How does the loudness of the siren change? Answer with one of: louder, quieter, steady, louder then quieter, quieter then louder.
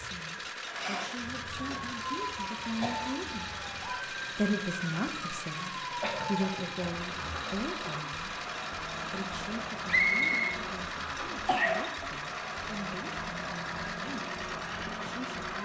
steady.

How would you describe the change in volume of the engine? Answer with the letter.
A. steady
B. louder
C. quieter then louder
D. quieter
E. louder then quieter
A.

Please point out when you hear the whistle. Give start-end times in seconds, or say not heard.
9.8-10.6.